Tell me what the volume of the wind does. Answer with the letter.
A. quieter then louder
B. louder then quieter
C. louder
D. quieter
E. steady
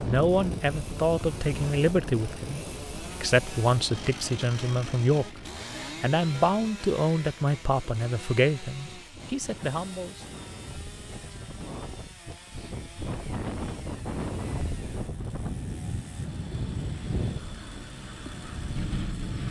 A.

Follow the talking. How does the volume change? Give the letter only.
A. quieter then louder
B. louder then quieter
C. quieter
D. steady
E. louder
D.